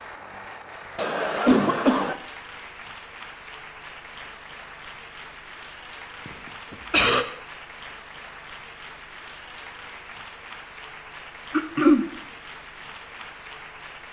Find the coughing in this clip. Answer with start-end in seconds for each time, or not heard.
0.9-2.1, 6.2-7.2, 11.5-12.1.